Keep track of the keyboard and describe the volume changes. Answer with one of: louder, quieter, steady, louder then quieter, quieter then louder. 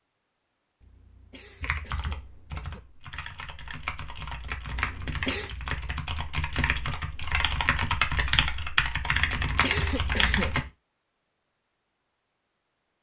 louder.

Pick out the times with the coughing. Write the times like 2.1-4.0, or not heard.
0.8-2.8, 4.7-5.5, 9.1-10.7.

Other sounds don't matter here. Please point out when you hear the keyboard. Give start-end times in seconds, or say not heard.
1.6-10.7.